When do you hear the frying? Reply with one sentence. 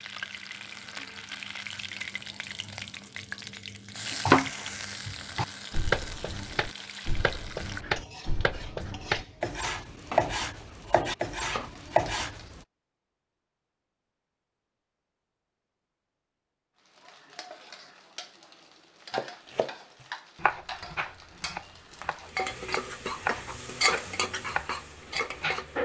You can hear the frying from 0.0 to 12.6 s and from 16.9 to 25.7 s.